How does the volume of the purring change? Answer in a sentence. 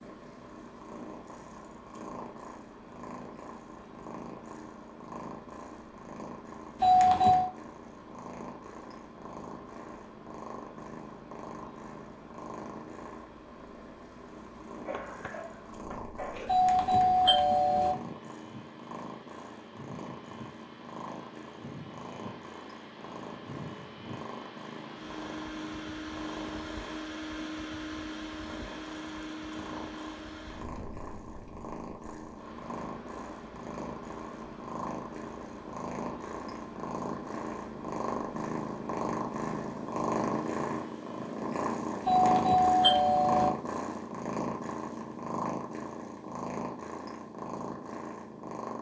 The loudness of the purring goes up.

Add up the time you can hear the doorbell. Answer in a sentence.
The doorbell can be heard for 4 seconds in total.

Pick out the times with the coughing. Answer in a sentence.
The coughing can be heard from 14.8 to 16.6 s.